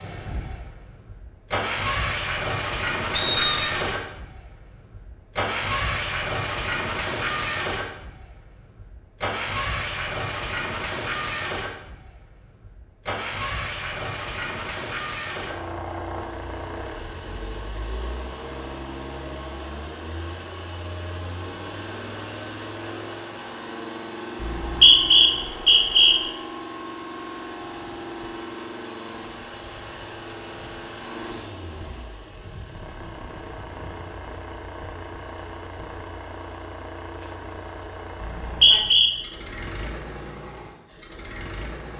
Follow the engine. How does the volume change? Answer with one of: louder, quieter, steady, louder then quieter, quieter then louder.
quieter.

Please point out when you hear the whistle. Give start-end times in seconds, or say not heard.
3.1-3.7, 24.4-26.1, 38.2-39.1.